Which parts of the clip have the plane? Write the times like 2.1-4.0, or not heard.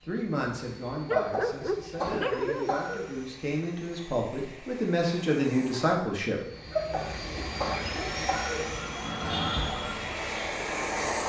0.0-11.2.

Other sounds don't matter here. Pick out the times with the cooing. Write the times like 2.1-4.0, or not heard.
not heard.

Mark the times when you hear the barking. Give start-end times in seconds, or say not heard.
1.1-2.8, 7.3-8.2.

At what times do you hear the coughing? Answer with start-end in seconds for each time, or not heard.
1.1-3.0, 6.7-8.7.